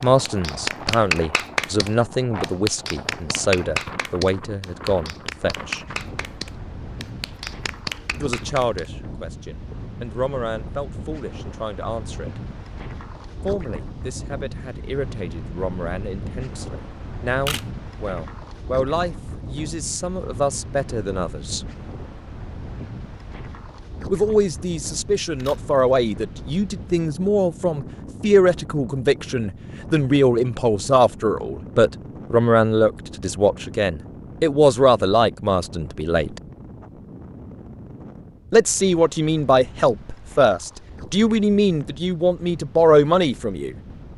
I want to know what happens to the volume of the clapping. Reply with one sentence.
The volume of the clapping goes down.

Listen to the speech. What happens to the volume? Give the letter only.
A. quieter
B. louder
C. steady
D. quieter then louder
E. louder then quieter
D.